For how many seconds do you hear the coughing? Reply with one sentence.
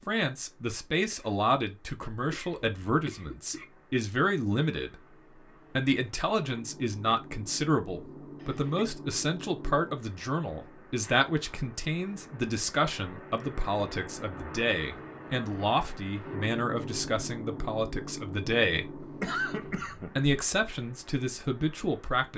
You can hear the coughing for 3 seconds altogether.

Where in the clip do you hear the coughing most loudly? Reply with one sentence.
The loudest moment of the coughing is at 19 seconds.